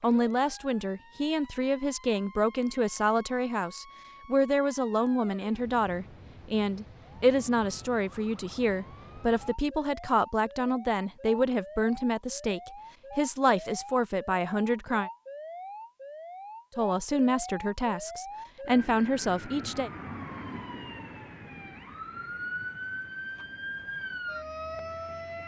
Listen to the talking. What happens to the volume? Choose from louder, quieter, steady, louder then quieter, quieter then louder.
steady.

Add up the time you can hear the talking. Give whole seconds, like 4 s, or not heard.
18 s.